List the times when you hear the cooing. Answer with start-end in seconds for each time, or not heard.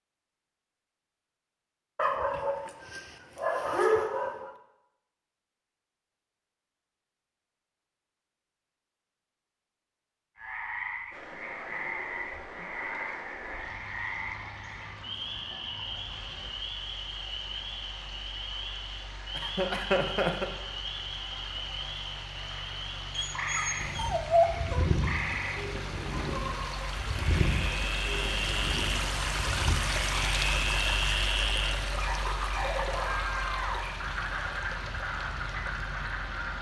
23.8-29.8.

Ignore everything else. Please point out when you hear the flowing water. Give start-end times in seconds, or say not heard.
11.1-36.5.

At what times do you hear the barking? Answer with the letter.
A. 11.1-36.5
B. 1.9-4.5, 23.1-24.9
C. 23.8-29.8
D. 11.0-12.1
B.